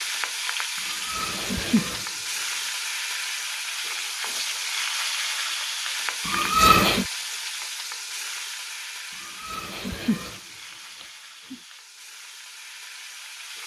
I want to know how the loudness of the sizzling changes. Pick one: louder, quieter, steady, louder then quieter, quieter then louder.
quieter.